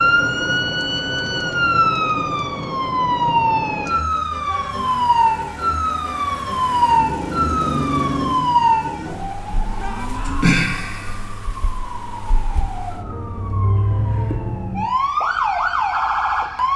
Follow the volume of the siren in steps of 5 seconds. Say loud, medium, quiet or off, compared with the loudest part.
loud, loud, medium, loud.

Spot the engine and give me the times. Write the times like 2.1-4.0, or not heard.
4.7-10.4.